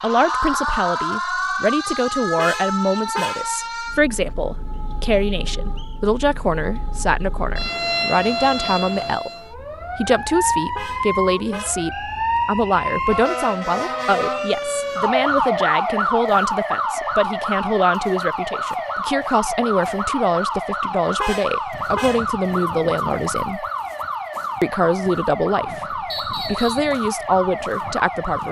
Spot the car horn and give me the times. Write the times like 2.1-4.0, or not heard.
2.4-3.5, 10.8-11.8, 21.1-22.3.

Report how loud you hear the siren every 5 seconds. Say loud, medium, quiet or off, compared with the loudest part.
loud, medium, loud, loud, loud, medium.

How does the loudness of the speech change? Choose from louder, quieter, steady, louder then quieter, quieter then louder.
steady.